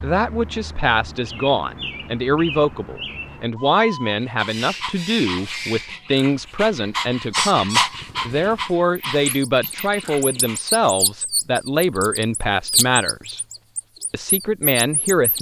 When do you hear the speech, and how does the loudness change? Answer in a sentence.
The speech can be heard from 0.0 to 13.4 s, at a steady volume; and briefly from 14.1 to 15.3 s.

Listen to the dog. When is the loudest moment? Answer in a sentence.
The loudest moment of the dog is at 8 seconds.